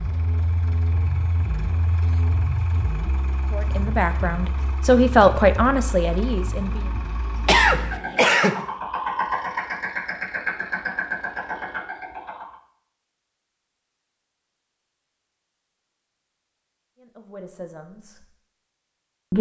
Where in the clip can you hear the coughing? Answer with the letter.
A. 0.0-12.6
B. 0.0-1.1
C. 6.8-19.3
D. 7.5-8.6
D.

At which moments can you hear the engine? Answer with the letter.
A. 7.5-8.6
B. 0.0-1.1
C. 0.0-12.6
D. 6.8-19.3
C.